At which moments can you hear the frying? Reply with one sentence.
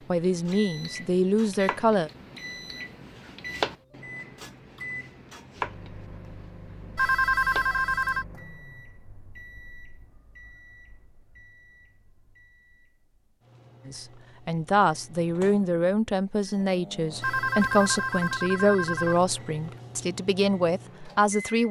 The frying can't be heard in this clip.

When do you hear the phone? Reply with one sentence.
The phone can be heard from 7.0 to 8.2 s and from 17.2 to 19.2 s.